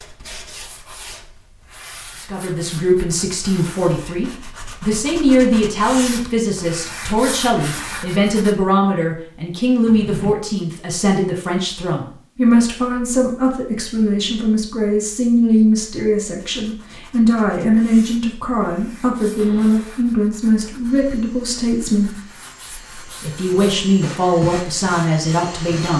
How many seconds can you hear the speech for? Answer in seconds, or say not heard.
23 s.